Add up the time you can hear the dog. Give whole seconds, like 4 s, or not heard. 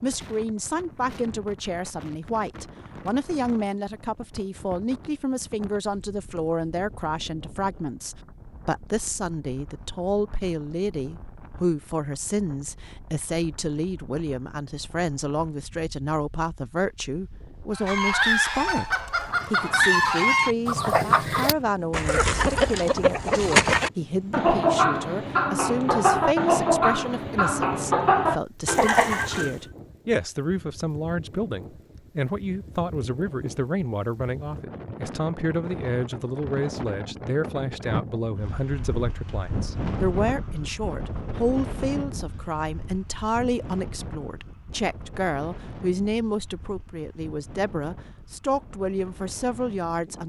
not heard.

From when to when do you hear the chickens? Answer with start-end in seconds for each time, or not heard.
17.8-29.6.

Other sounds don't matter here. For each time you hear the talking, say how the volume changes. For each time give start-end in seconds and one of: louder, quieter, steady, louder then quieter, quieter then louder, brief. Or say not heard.
0.0-50.2 steady.